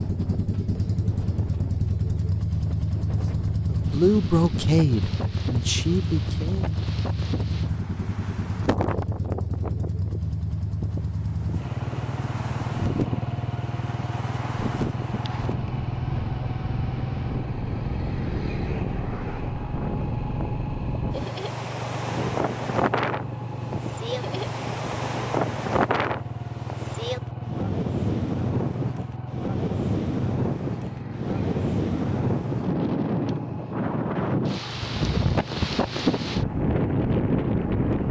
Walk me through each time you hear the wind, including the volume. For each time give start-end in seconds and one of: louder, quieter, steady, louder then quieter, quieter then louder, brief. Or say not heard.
0.0-38.0 louder.